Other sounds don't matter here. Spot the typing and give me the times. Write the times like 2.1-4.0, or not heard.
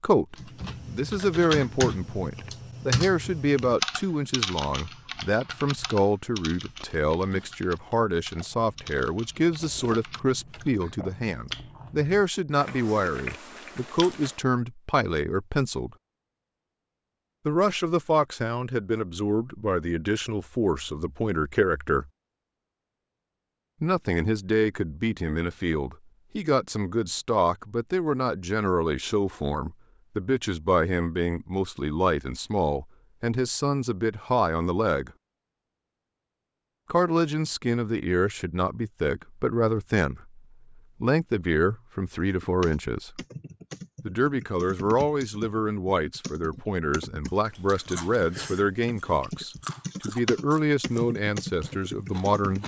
0.3-10.9, 42.2-52.6.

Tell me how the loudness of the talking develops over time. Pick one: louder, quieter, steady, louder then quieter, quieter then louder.
steady.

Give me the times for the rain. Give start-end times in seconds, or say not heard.
not heard.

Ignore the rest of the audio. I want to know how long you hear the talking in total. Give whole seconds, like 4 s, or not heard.
47 s.